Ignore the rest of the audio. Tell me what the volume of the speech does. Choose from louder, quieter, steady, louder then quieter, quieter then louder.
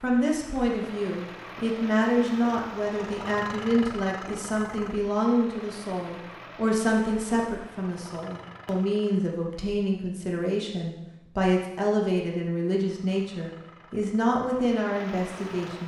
steady.